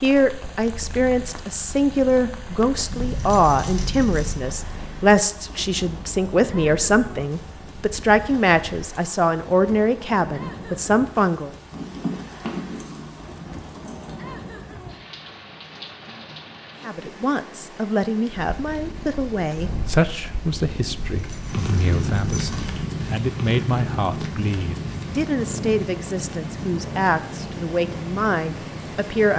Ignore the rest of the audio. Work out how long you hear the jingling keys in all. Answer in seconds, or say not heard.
6 s.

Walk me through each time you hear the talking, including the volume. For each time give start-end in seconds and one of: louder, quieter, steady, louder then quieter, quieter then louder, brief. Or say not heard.
0.0-11.5 steady
16.9-29.3 steady.